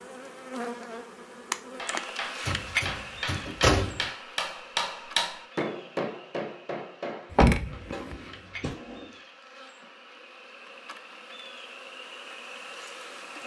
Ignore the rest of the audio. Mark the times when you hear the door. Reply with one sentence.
The door can be heard from 2.5 to 4.1 s and from 7.3 to 8.2 s.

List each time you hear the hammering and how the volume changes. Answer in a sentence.
You can hear the hammering from 1.8 to 9.2 s, getting louder then quieter.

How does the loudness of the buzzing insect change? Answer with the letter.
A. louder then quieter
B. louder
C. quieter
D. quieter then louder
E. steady
D.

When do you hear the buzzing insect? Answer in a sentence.
You can hear the buzzing insect from 0.0 to 13.4 s.